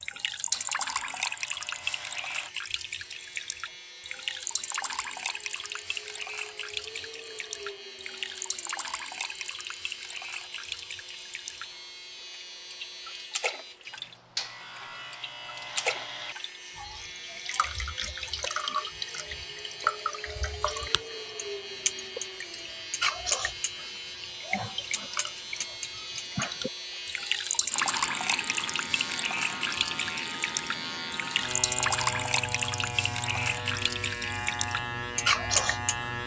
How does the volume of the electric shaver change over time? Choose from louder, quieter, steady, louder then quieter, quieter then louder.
louder.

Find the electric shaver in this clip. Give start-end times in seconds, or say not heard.
0.0-36.2.